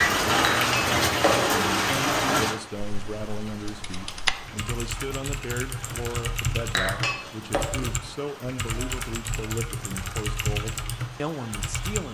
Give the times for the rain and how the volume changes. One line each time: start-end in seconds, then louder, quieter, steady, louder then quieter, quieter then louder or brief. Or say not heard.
0.0-12.0 quieter.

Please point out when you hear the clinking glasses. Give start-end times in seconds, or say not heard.
0.4-1.6, 6.8-7.7.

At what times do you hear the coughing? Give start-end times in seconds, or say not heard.
not heard.